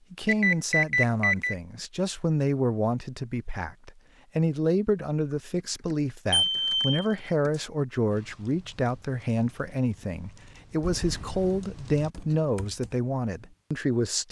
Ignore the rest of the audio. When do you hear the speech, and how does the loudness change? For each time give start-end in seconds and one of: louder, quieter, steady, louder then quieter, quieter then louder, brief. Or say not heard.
0.1-14.2 steady.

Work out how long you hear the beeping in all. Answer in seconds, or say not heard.
3 s.